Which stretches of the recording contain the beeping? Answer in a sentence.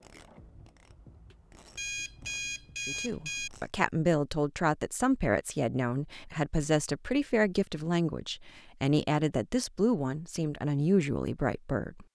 You can hear the beeping from 1.8 to 3.5 s.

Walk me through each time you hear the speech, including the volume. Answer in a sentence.
The speech can be heard from 2.9 to 12.1 s, at a steady volume.